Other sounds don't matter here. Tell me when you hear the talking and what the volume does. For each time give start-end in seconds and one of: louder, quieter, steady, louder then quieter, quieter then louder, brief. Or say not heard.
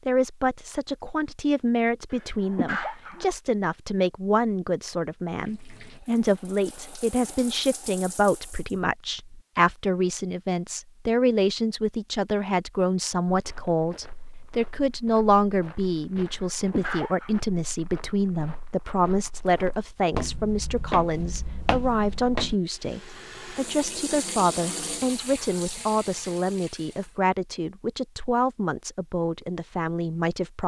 0.1-30.6 steady.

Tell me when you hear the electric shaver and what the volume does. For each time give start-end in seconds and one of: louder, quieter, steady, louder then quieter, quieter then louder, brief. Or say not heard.
not heard.